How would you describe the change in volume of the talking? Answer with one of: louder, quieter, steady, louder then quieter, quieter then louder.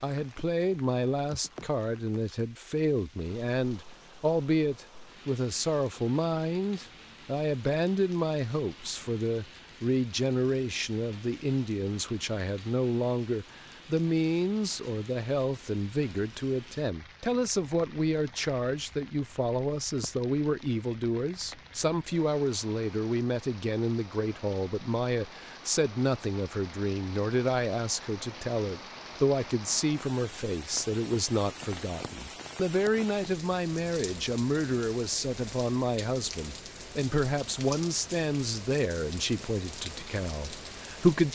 steady.